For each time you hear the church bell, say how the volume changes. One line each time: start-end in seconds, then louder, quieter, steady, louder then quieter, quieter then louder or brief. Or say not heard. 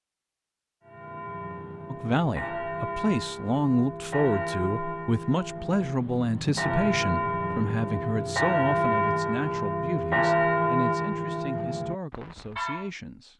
0.8-12.9 louder.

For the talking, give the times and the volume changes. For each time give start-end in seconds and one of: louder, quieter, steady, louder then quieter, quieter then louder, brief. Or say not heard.
1.9-13.3 quieter.